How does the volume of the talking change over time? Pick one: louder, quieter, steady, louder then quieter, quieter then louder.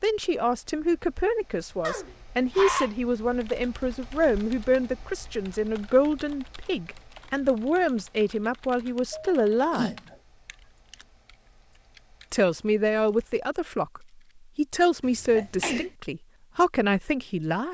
steady.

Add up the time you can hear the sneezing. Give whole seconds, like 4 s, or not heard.
3 s.